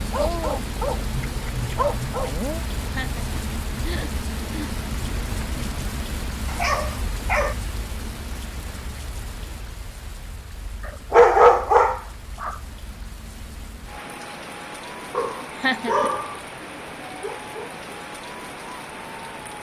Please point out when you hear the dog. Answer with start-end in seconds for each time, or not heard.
0.1-2.6, 6.5-7.5, 10.8-12.6, 15.1-16.4, 17.2-17.7.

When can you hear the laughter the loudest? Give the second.
16 s.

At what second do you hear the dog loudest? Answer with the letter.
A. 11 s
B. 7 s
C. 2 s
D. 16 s
A.